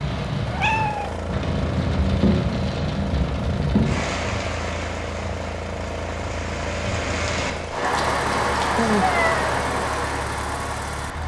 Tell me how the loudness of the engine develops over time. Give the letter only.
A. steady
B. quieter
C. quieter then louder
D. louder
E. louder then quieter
A.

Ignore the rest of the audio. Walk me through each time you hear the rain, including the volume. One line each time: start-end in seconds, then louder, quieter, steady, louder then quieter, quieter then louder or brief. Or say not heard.
0.0-11.2 quieter then louder.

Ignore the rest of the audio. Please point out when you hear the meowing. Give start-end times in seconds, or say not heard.
0.5-1.2, 8.8-9.4.